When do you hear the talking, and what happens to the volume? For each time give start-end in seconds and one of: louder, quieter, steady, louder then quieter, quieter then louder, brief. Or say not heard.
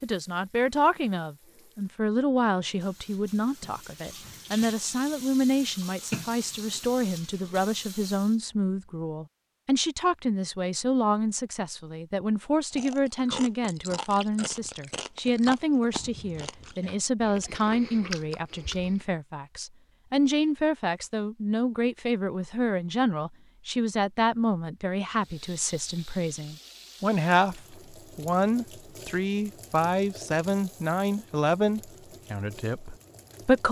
0.0-33.6 steady.